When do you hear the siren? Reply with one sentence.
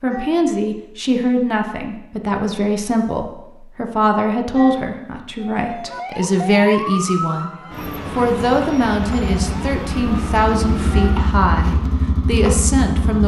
The siren can be heard from 5.5 to 11.3 s.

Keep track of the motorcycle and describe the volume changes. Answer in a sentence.
The loudness of the motorcycle goes up.